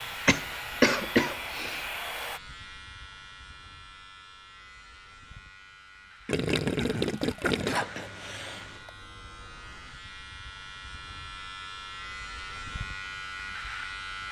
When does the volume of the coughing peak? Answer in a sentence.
The loudest moment of the coughing is at 1 second.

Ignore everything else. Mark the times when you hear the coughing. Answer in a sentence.
The coughing can be heard from 0.2 to 1.9 s and from 7.7 to 8.9 s.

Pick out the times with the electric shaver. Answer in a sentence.
You can hear the electric shaver from 0.0 to 14.2 s.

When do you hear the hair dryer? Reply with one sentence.
You can hear the hair dryer from 0.0 to 2.4 s.